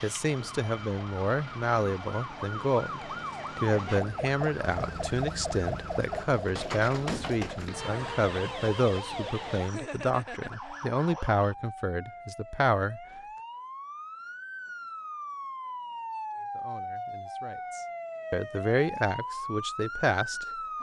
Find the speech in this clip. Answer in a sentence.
You can hear the speech from 0.0 to 13.0 s and from 16.4 to 20.7 s.